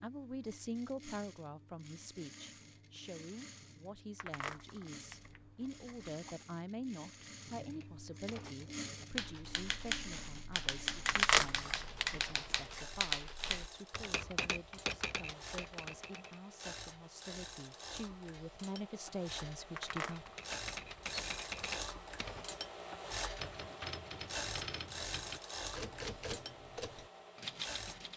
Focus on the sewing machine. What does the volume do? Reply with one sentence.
The volume of the sewing machine goes up.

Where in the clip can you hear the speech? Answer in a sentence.
The speech can be heard from 0.0 to 20.3 s.